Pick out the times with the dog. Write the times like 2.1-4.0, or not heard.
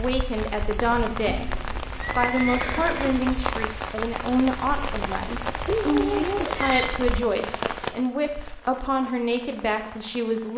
5.7-7.0.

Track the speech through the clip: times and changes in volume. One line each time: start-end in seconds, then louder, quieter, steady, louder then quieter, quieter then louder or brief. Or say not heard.
0.0-1.5 brief
2.1-10.5 steady.